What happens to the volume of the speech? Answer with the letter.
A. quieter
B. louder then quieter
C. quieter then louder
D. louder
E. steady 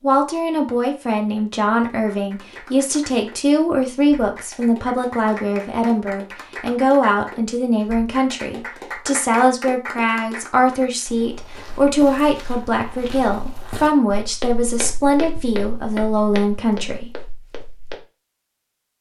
E.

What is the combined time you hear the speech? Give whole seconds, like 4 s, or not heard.
17 s.